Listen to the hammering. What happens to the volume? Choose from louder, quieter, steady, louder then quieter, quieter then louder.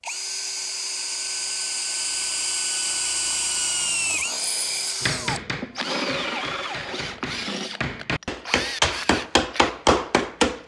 louder.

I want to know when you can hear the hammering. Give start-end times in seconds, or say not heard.
5.0-10.6.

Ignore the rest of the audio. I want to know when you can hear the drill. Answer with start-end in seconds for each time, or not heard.
0.0-10.6.